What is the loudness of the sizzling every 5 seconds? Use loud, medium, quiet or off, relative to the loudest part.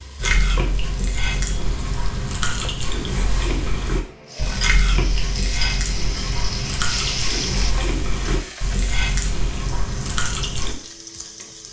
medium, loud, medium.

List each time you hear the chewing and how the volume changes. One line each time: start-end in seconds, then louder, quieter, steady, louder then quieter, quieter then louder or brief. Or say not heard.
0.1-10.8 steady.